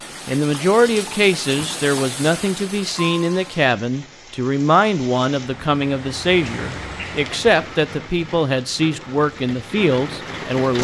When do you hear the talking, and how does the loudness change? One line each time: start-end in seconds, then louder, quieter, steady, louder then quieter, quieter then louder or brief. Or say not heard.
0.2-10.7 steady.